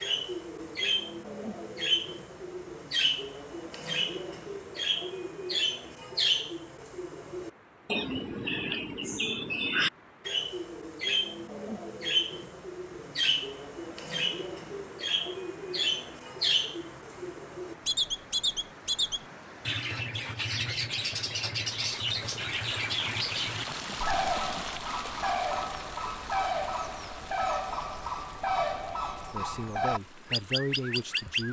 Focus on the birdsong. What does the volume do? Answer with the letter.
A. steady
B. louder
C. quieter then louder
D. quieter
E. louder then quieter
A.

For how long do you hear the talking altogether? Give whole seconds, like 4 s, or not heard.
2 s.